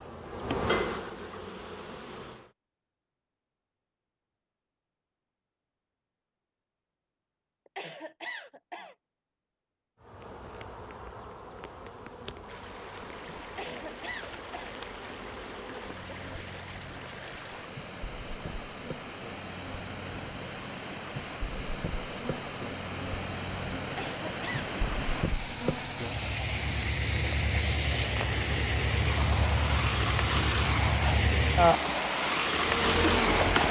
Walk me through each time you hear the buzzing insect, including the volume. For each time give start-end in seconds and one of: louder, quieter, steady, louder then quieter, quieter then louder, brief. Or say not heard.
0.0-2.5 brief
10.0-33.6 louder.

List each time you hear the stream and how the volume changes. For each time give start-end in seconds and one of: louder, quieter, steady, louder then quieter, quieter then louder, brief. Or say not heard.
12.4-33.6 louder.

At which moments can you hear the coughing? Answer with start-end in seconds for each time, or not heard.
7.7-8.9, 13.4-14.8, 23.9-24.7.